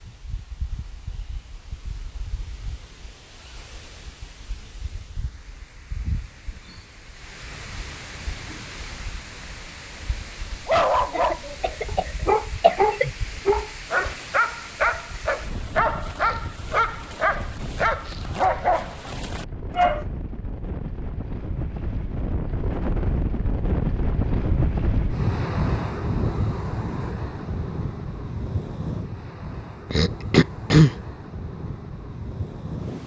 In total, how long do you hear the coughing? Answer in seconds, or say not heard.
3 s.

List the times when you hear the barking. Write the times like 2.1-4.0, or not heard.
10.7-20.1.